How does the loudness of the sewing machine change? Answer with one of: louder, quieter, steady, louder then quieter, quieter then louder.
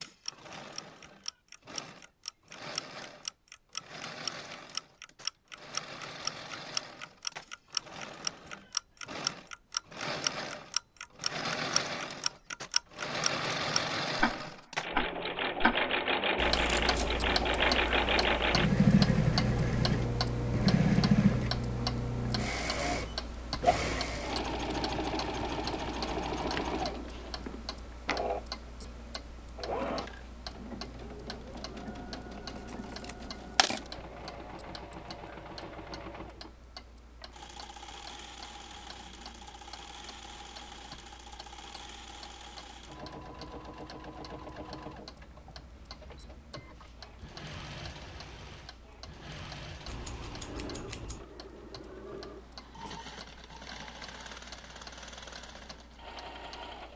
louder then quieter.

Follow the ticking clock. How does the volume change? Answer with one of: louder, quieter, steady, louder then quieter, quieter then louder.
quieter.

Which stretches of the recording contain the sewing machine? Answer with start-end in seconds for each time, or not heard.
0.0-56.9.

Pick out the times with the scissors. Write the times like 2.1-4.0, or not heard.
16.5-17.1, 32.5-33.8, 49.9-51.2.